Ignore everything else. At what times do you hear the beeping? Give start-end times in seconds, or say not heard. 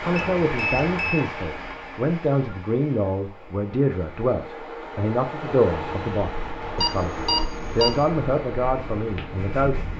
0.1-1.2, 6.8-8.0.